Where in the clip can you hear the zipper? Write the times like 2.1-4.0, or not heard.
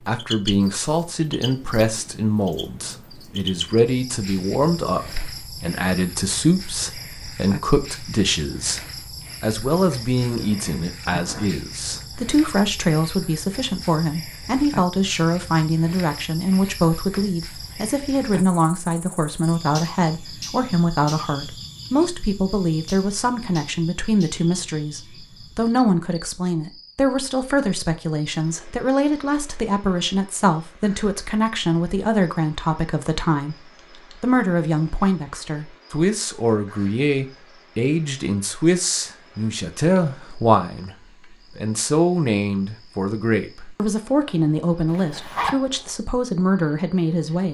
10.2-11.9, 44.9-45.5.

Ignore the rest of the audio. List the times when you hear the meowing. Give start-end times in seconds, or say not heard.
not heard.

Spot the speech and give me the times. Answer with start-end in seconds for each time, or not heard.
0.1-33.5, 34.2-41.0, 41.5-47.4.